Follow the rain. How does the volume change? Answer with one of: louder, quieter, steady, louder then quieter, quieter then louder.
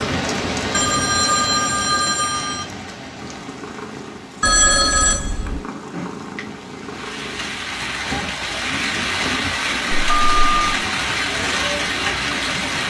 quieter then louder.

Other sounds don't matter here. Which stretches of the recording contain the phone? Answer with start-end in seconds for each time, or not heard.
0.7-2.6, 4.4-5.6, 10.2-10.6.